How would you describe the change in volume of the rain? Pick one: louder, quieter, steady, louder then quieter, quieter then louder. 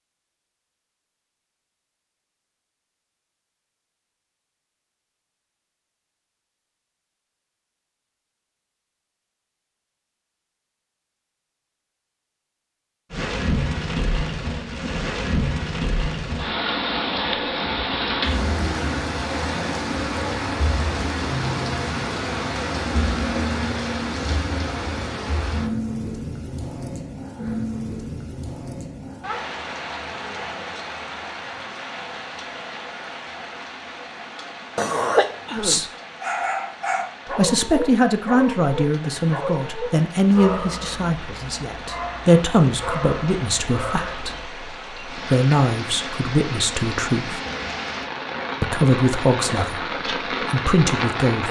quieter then louder.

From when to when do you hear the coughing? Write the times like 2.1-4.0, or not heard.
34.8-35.8.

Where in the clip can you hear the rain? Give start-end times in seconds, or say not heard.
13.1-51.4.